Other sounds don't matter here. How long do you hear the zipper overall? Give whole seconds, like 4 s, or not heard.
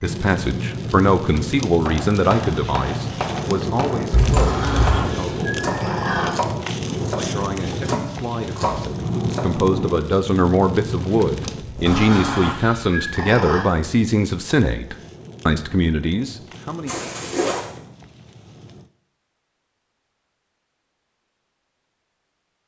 2 s.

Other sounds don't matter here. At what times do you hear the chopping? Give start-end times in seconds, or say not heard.
1.9-9.6.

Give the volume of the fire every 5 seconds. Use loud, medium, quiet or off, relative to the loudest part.
loud, loud, medium, quiet, off.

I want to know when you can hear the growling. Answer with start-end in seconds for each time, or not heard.
4.3-6.3, 11.8-13.7.